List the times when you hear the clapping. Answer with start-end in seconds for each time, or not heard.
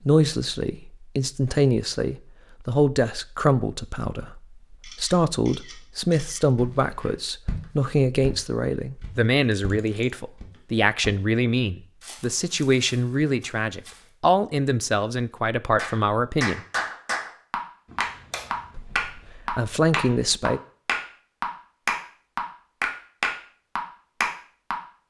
15.8-24.8.